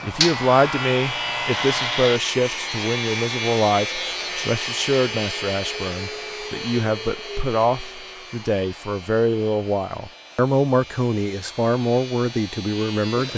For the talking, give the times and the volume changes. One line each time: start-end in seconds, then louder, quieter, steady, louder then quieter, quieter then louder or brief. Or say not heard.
0.0-13.3 steady.